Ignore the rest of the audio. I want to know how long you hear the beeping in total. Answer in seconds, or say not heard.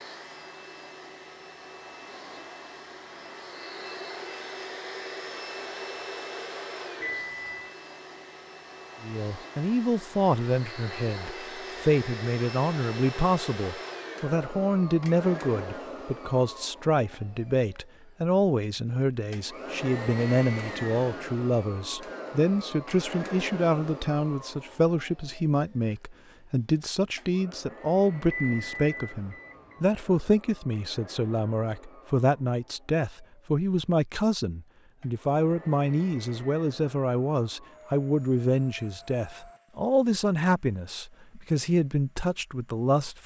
2 s.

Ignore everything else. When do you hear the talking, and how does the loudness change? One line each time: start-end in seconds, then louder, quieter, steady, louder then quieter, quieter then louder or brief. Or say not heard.
9.0-43.2 steady.